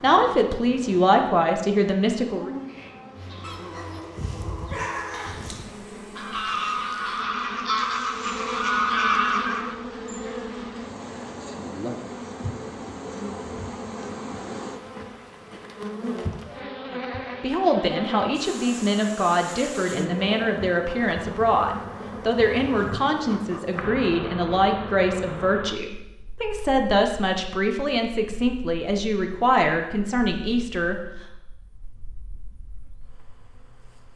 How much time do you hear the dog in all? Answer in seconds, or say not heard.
2 s.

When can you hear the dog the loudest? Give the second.
5 s.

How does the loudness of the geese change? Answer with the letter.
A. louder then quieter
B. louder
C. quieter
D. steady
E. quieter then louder
B.